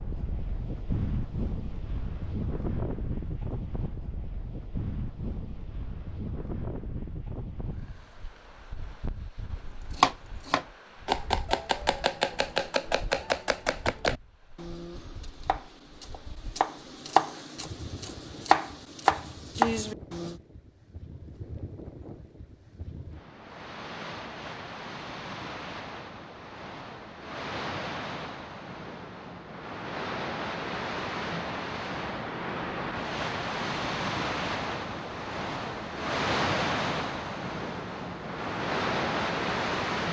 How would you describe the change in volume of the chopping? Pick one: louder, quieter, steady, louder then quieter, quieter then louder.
quieter then louder.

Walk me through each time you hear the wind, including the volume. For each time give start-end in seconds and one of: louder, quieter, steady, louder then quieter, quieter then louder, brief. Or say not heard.
0.0-40.0 quieter then louder.